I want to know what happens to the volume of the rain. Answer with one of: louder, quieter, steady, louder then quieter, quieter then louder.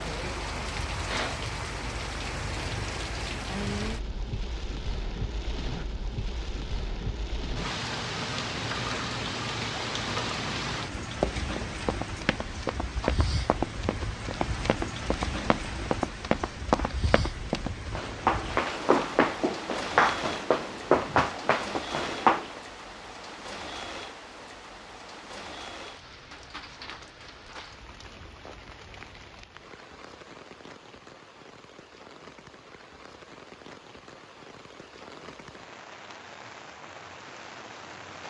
quieter.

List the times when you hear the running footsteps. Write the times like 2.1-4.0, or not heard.
11.2-22.5.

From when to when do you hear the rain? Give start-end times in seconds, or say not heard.
0.0-38.2.